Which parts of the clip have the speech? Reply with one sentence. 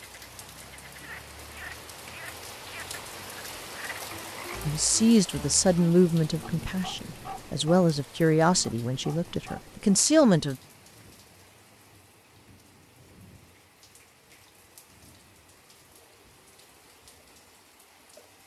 The speech can be heard from 4.7 to 10.6 s.